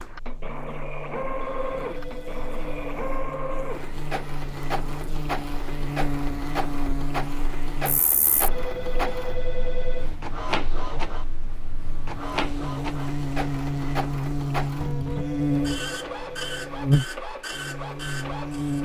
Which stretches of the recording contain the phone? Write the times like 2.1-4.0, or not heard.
1.4-3.0, 8.5-10.2, 15.2-16.8.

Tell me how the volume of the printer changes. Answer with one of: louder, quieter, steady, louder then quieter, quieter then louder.
steady.